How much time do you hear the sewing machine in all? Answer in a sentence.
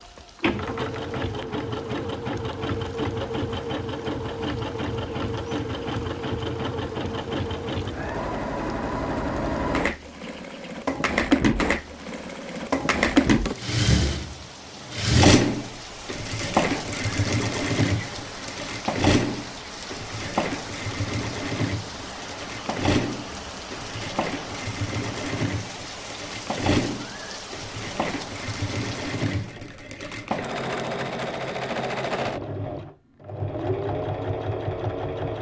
The sewing machine can be heard for 35 seconds in total.